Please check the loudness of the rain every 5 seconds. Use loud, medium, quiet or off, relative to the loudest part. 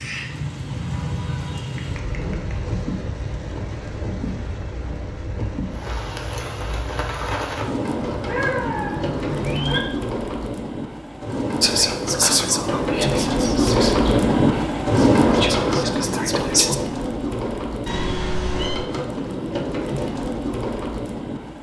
medium, medium, loud, loud, medium.